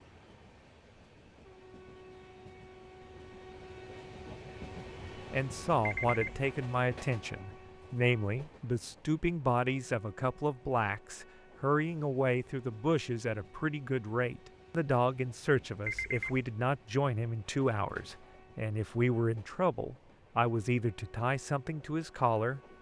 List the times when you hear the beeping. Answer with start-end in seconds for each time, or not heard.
5.8-6.5, 15.8-16.4.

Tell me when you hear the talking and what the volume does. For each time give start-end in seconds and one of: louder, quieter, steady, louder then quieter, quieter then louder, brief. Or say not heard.
5.3-22.6 steady.